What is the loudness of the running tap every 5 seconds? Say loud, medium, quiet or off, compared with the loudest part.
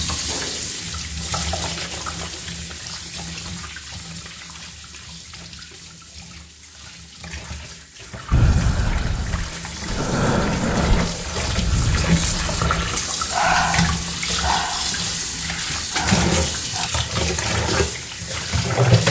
medium, quiet, loud, loud.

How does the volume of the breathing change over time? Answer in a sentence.
The loudness of the breathing goes down.